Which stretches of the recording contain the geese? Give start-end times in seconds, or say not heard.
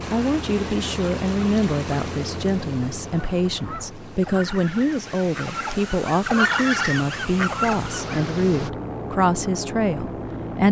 3.0-8.2.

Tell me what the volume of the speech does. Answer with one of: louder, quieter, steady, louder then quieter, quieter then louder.
steady.